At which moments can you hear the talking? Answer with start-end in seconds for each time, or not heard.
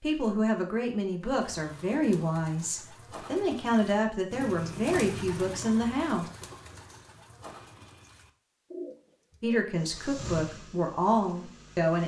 0.0-6.3, 9.4-12.0.